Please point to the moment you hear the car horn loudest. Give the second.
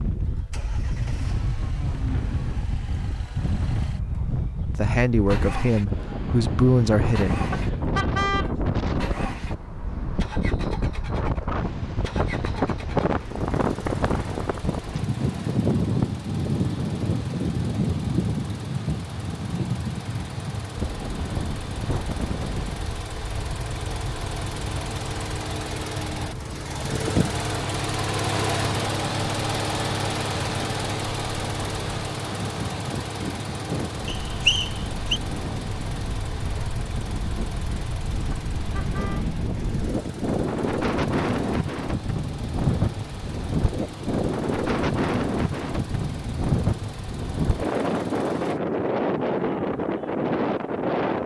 8 s.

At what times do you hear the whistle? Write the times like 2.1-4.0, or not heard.
34.0-35.2.